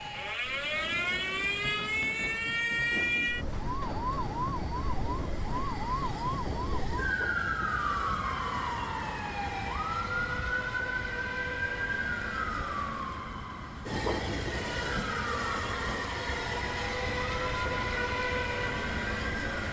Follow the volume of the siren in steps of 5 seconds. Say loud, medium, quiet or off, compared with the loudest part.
loud, loud, loud, medium.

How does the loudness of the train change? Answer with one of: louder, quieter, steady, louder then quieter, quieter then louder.
louder.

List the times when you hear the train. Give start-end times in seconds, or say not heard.
0.0-19.6.